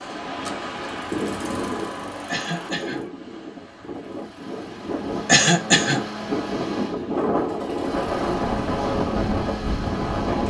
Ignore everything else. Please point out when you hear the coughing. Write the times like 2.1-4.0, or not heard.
2.2-3.0, 5.2-6.0.